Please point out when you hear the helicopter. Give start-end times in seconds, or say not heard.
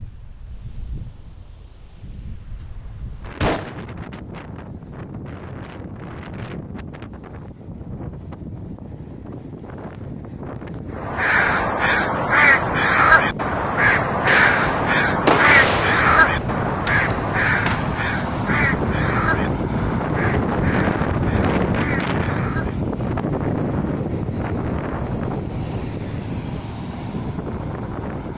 not heard.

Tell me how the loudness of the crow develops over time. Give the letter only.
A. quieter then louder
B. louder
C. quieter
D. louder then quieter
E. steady
C.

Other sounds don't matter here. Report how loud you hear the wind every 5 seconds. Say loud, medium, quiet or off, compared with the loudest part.
quiet, quiet, medium, loud, loud, medium.